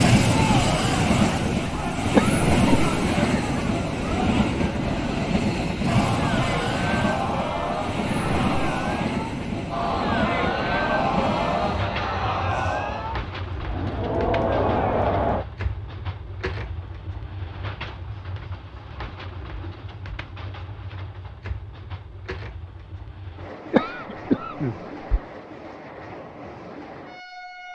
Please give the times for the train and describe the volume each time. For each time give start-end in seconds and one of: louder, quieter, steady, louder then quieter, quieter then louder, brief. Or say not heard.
0.0-27.7 quieter.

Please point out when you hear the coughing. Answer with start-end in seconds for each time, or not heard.
2.1-3.1, 23.7-25.2.